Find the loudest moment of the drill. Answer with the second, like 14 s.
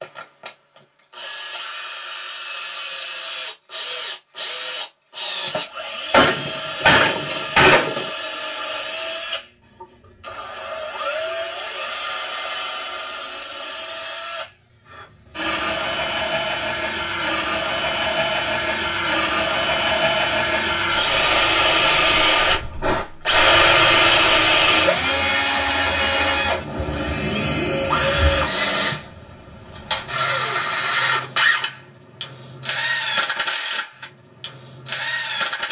24 s.